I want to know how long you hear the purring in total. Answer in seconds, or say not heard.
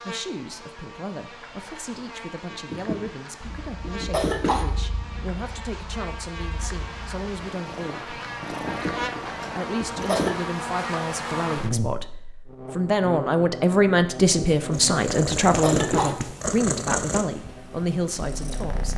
11 s.